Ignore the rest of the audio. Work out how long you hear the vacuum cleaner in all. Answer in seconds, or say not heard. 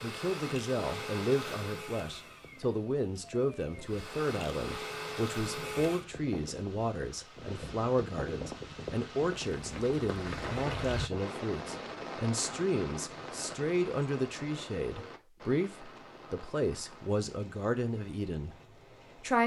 6 s.